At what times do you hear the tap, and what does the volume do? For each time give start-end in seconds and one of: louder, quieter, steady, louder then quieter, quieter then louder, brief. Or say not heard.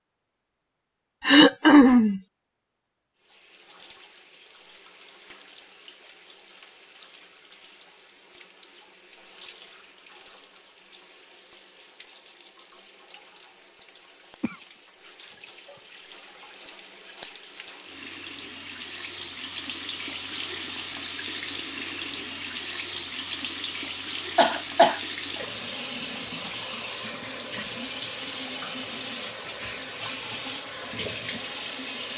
3.1-32.1 louder.